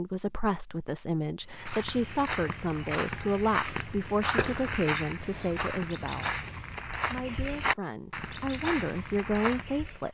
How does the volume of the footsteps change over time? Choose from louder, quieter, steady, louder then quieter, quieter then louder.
steady.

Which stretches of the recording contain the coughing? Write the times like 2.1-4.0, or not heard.
4.3-4.9.